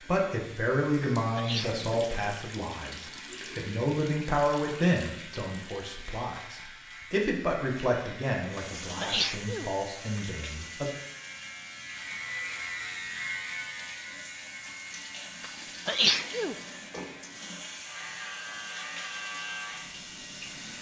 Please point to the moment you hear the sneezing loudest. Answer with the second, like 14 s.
16 s.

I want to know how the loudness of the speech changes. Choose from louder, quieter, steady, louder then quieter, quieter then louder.
quieter.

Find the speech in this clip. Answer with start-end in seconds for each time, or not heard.
0.1-10.8.